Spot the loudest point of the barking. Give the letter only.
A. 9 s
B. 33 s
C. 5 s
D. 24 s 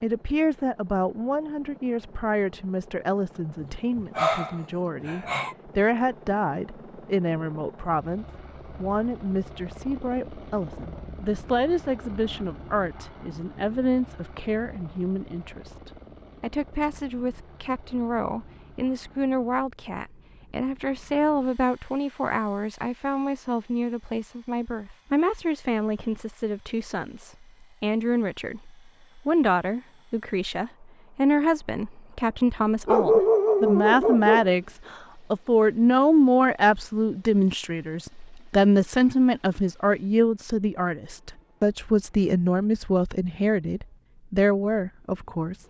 B.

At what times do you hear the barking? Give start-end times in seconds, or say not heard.
3.6-5.5, 32.9-34.5.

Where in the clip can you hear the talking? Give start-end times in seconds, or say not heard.
0.0-45.6.